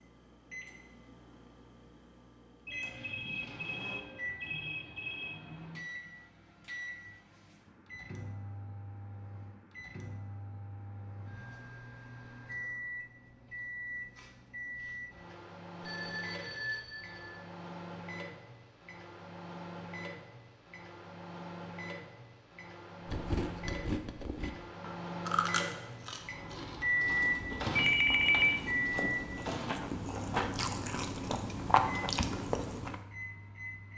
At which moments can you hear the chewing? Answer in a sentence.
The chewing can be heard from 23.1 to 33.0 s.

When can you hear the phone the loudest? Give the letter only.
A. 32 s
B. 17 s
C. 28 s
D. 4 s
C.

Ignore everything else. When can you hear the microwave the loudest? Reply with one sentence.
The loudest moment of the microwave is at 27 seconds.